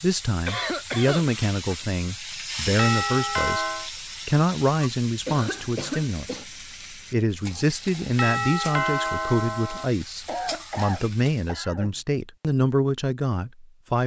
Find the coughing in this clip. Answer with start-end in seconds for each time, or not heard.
0.5-1.2, 5.2-6.5, 10.2-12.0.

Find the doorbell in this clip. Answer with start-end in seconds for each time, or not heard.
2.8-3.9, 8.2-9.8.